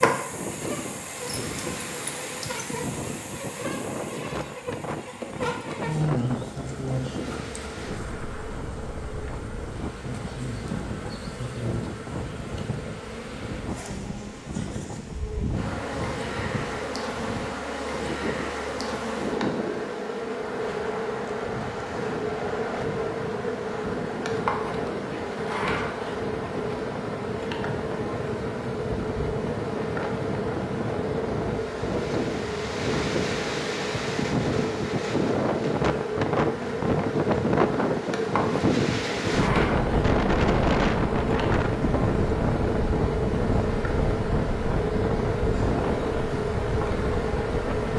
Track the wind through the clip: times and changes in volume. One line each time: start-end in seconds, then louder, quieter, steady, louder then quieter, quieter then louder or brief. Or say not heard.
0.1-47.9 louder.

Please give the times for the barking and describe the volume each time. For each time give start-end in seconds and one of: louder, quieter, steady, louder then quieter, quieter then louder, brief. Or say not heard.
not heard.